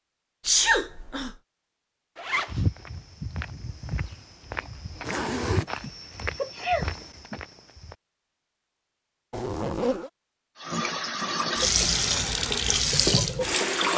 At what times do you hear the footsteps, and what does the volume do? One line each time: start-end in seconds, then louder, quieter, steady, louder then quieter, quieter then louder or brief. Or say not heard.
2.5-8.0 steady.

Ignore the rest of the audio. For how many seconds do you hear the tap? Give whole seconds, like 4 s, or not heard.
3 s.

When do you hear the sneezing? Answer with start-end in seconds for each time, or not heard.
0.5-1.4, 5.8-7.4, 11.6-12.1.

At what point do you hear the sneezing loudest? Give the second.
1 s.